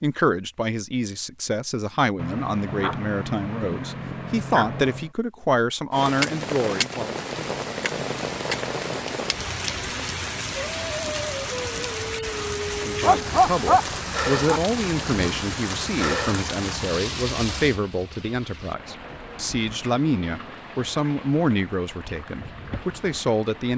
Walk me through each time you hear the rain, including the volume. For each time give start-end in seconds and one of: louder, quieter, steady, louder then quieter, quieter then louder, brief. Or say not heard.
5.9-23.7 quieter.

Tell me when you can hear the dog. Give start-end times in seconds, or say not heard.
2.1-5.1, 13.0-15.4.